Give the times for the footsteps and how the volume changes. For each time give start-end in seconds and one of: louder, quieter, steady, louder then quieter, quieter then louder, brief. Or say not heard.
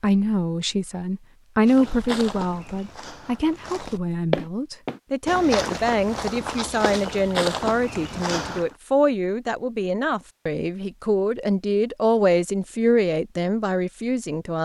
1.6-8.8 louder.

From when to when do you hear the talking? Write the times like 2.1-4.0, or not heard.
0.0-14.6.